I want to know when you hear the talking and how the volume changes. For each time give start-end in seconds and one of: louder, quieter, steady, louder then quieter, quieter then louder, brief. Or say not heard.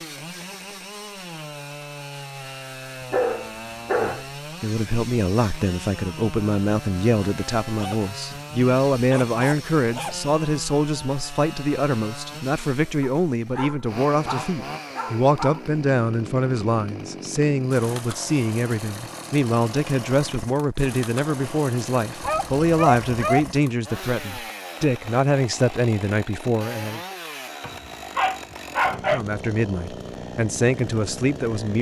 4.0-27.0 steady
28.9-31.7 brief.